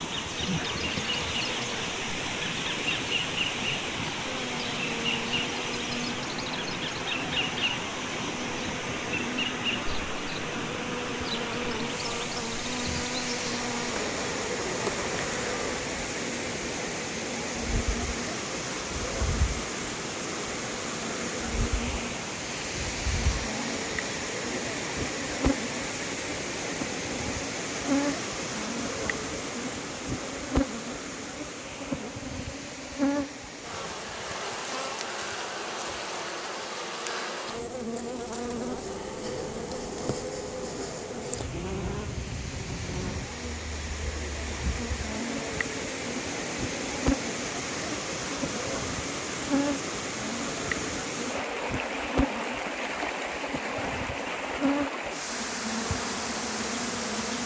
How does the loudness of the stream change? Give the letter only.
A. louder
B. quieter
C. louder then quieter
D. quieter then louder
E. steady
D.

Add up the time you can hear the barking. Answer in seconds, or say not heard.
not heard.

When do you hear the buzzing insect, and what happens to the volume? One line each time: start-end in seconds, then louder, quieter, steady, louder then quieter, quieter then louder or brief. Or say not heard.
0.0-57.4 steady.